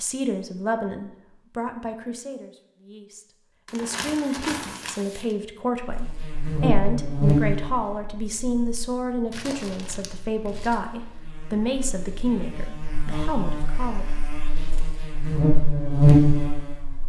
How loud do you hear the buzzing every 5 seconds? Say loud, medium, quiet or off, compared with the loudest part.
off, medium, quiet, loud.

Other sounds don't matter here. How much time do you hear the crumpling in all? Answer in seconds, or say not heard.
3 s.